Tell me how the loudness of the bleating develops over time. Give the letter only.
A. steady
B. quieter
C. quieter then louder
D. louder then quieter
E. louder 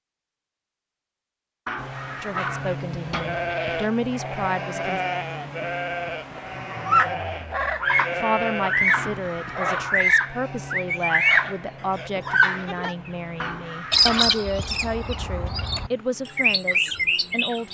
C.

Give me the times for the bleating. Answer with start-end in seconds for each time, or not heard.
2.5-12.9.